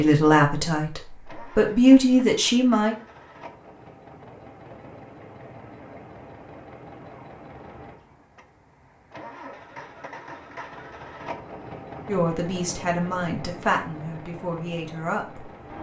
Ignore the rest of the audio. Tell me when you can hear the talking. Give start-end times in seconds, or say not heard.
0.0-3.0, 12.1-15.5.